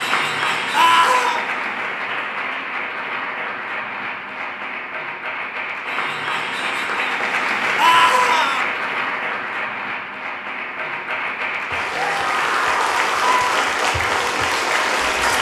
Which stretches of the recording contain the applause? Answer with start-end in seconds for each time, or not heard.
0.0-15.3.